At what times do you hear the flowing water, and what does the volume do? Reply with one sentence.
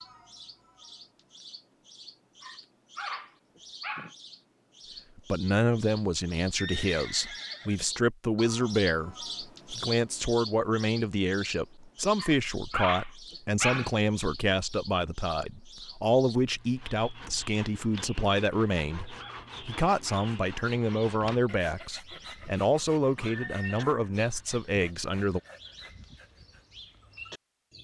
The flowing water can't be heard in this clip.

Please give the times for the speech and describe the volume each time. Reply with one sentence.
You can hear the speech from 5.2 to 25.4 s, at a steady volume.